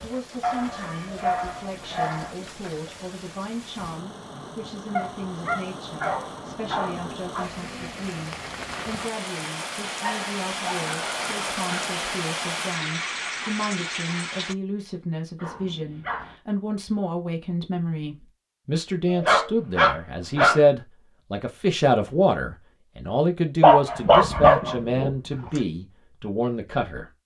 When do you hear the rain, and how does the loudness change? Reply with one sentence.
You can hear the rain from 0.0 to 14.6 s, getting louder.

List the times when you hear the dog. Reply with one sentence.
The dog can be heard from 0.4 to 2.4 s, from 5.0 to 7.5 s, from 10.0 to 11.9 s, from 15.3 to 16.4 s, from 19.1 to 20.6 s and from 23.6 to 25.6 s.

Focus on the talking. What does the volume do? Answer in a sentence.
The loudness of the talking goes up.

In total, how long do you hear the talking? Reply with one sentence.
The talking can be heard for 27 seconds in total.